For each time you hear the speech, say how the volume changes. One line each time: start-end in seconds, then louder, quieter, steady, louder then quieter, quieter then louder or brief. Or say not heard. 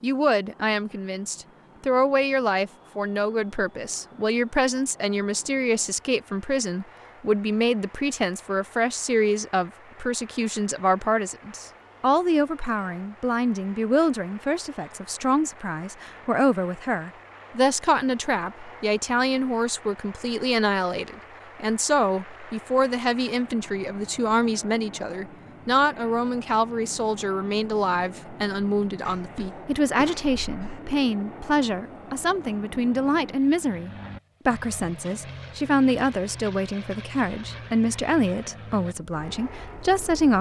0.0-40.3 steady.